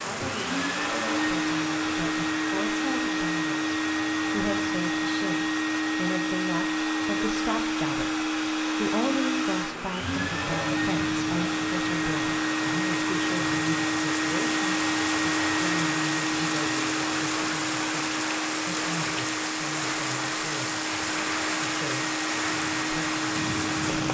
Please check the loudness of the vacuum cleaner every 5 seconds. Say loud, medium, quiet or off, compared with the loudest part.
loud, loud, loud, loud, medium.